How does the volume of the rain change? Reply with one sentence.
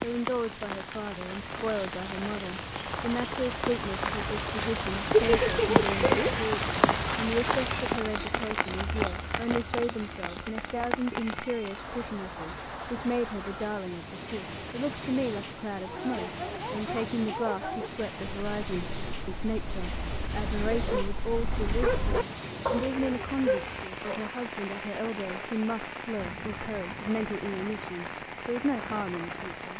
The loudness of the rain goes down.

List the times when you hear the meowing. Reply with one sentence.
You can hear the meowing from 5.1 to 6.4 s.